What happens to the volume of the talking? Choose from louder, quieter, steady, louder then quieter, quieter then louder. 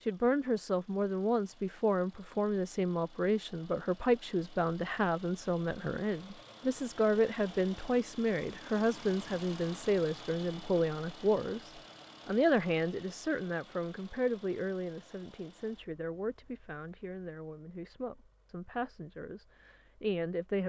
quieter.